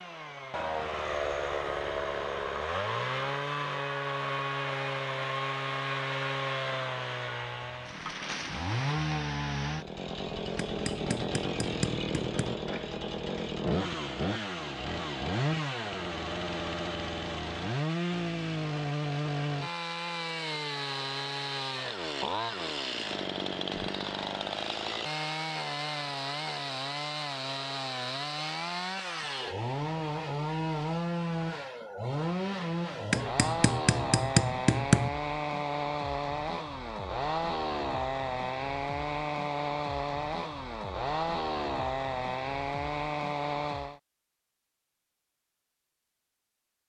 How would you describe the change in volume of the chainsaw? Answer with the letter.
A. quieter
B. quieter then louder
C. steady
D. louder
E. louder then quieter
C.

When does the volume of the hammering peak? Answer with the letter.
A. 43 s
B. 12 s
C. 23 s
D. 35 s
D.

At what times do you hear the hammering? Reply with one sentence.
You can hear the hammering from 10.7 to 12.6 s and from 33.1 to 35.1 s.